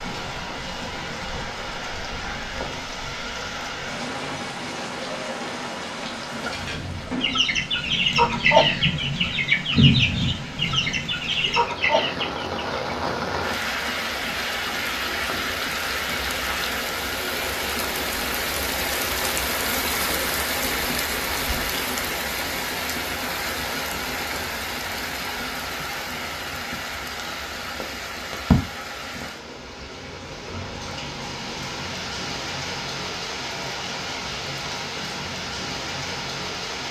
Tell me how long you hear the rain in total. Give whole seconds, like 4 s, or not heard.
37 s.